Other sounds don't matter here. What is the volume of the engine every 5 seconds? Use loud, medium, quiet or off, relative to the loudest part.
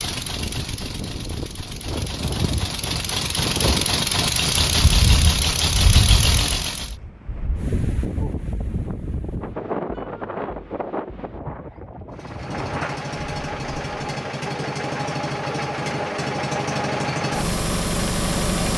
loud, loud, medium, loud.